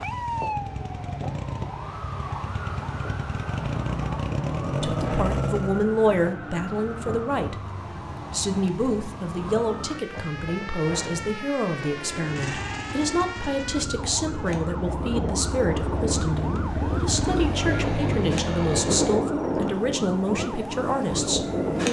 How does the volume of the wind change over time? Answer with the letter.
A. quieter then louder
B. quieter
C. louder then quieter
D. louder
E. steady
D.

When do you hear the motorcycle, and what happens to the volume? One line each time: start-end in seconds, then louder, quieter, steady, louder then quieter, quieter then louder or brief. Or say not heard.
0.0-6.0 louder
12.2-19.3 louder.